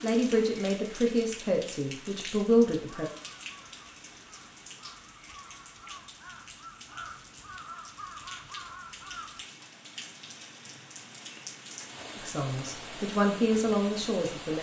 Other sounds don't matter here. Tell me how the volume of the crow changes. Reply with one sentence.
The loudness of the crow goes up.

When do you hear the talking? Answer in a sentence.
The talking can be heard from 0.0 to 3.0 s and from 12.2 to 14.5 s.